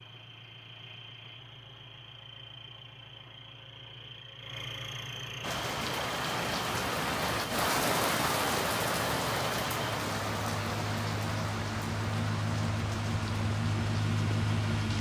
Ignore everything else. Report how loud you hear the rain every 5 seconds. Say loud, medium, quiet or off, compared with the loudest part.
off, loud, medium.